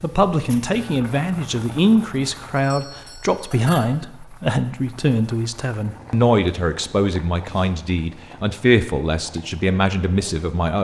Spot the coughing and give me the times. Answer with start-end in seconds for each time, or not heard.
not heard.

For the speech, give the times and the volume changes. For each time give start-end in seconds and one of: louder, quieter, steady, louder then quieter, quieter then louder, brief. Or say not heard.
0.0-10.8 steady.